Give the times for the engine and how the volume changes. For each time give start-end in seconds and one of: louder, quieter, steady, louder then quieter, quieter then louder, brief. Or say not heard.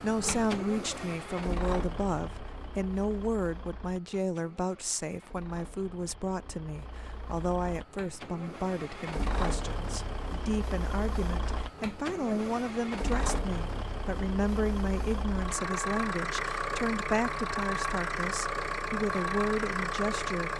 0.0-20.5 quieter then louder.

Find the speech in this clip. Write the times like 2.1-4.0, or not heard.
0.0-20.5.